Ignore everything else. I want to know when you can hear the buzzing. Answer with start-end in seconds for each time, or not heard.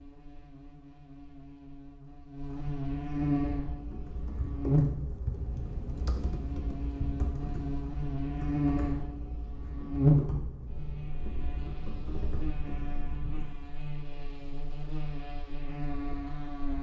0.0-16.7.